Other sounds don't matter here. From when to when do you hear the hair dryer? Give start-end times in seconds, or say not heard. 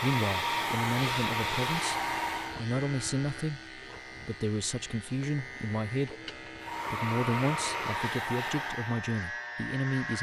0.0-2.6, 6.5-10.1.